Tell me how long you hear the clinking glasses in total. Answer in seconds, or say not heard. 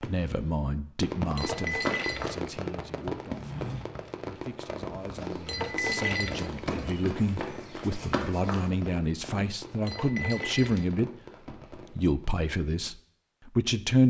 4 s.